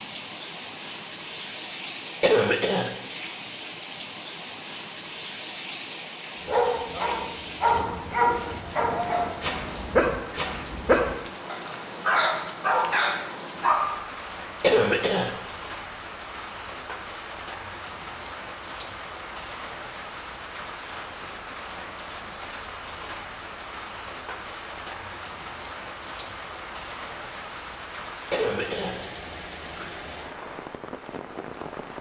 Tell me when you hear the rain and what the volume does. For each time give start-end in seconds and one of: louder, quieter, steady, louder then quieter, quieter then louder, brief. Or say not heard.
0.0-31.9 steady.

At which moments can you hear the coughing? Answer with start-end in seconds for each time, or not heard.
2.2-2.9, 14.6-15.3, 28.3-29.0.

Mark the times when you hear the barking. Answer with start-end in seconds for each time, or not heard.
6.4-14.0.